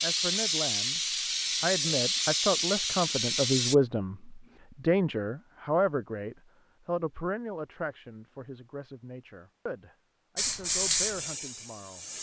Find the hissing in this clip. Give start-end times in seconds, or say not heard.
0.0-3.8, 10.3-12.1.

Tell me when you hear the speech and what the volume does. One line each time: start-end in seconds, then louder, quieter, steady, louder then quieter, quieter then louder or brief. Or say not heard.
0.0-1.0 brief
1.6-12.1 quieter.